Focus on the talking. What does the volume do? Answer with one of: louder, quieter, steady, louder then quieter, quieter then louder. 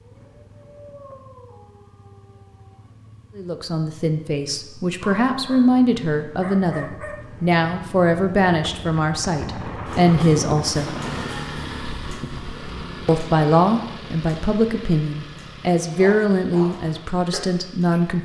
steady.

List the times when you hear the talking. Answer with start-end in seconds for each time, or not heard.
3.4-10.9, 13.1-18.1.